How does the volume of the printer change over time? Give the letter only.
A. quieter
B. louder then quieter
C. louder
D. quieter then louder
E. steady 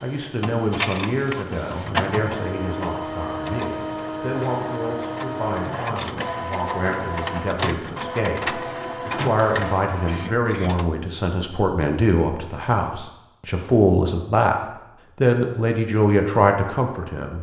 E.